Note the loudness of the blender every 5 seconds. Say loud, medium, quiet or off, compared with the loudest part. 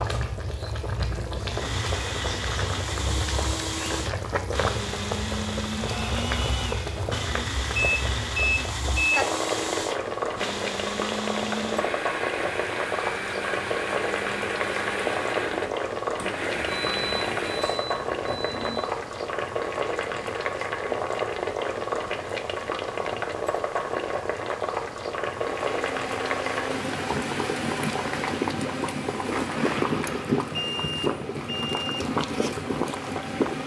loud, loud, loud, loud, off, loud, medium.